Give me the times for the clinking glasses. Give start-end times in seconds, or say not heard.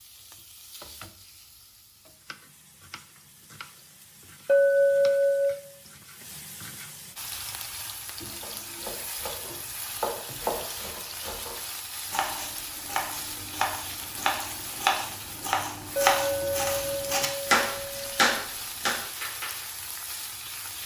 4.5-5.6, 15.9-18.1.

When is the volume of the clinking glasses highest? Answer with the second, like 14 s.
5 s.